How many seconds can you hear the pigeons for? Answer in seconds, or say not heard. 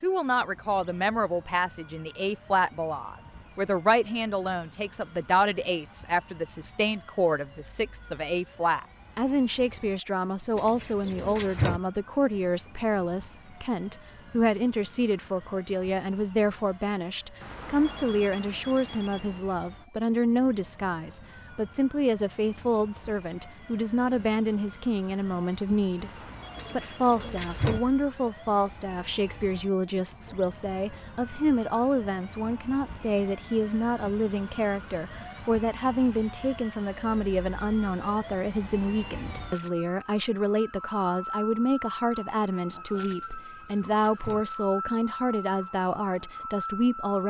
4 s.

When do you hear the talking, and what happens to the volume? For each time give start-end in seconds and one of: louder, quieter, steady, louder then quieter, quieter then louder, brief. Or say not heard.
0.0-26.1 steady
26.7-47.2 steady.